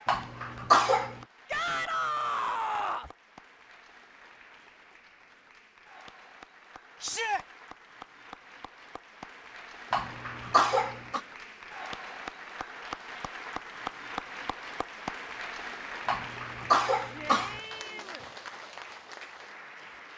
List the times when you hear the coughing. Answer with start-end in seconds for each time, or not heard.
0.1-1.1, 9.9-11.2, 16.1-17.6.